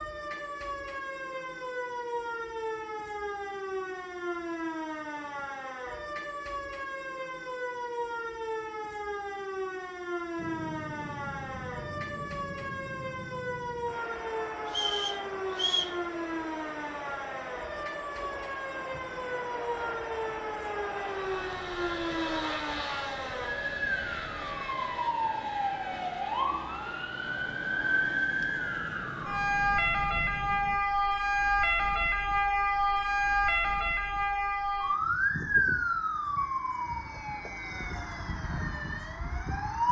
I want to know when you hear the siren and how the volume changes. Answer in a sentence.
The siren can be heard from 0.0 to 39.8 s, getting louder.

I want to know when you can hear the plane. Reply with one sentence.
You can hear the plane from 10.3 to 30.8 s.